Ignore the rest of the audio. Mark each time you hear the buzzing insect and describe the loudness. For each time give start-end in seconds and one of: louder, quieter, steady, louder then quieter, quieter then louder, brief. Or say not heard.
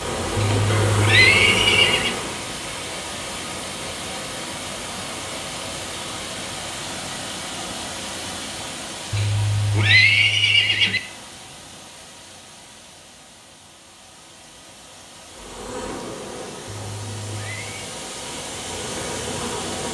0.0-2.5 brief
15.3-19.8 quieter then louder.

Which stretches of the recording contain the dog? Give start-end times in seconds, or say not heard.
not heard.